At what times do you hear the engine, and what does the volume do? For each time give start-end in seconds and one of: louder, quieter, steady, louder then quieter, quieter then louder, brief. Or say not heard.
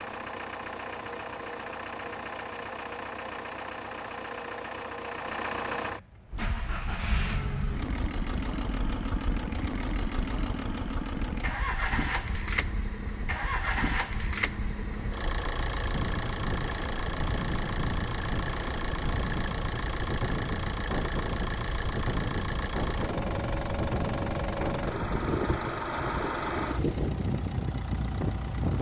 0.0-28.7 steady.